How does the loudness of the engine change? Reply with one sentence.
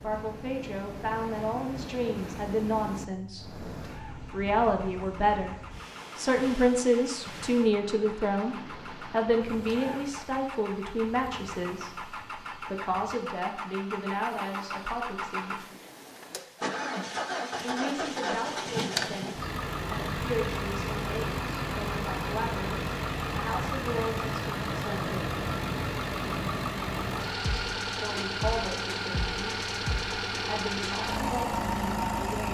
The volume of the engine goes up.